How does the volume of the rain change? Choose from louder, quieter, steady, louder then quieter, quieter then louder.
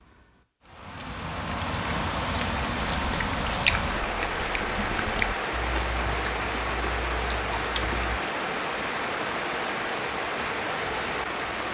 steady.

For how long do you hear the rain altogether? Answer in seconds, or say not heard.
12 s.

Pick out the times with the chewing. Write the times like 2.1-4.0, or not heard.
2.8-8.2.